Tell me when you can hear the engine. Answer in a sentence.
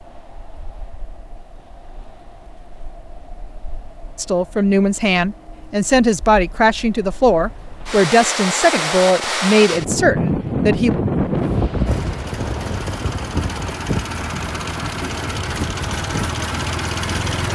You can hear the engine from 11.8 to 17.5 s.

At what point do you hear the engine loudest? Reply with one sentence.
The loudest moment of the engine is at 17 seconds.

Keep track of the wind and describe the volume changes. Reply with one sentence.
The loudness of the wind goes up, then down.